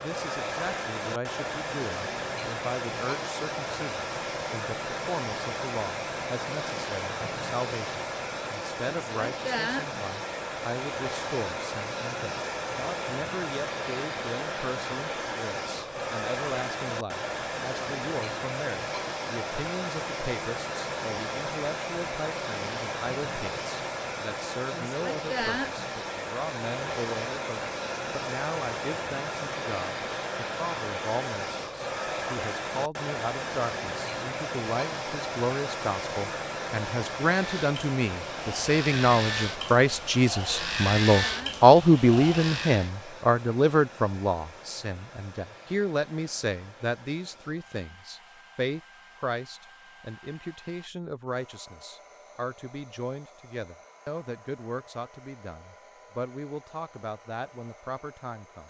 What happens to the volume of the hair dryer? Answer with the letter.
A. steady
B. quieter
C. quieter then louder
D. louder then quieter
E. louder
B.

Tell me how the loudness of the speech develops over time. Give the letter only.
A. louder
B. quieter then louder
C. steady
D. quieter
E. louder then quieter
E.